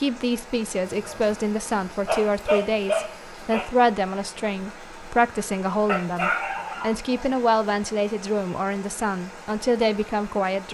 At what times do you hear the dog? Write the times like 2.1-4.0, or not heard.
0.8-3.6, 5.8-7.3.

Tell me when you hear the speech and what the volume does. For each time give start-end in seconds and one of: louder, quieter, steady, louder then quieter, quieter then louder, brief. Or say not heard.
0.0-10.7 steady.